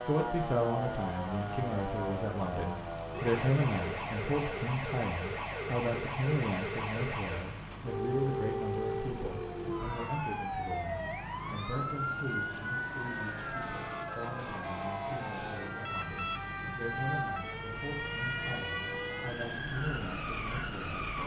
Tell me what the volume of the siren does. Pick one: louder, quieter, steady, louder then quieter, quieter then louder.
steady.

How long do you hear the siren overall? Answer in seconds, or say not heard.
21 s.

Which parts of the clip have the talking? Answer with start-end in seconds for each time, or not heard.
0.0-21.0.